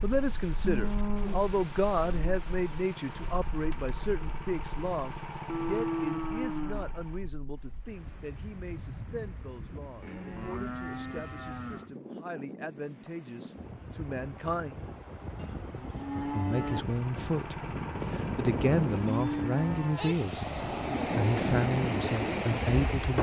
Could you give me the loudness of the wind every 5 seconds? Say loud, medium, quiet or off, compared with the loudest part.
quiet, quiet, quiet, medium, loud.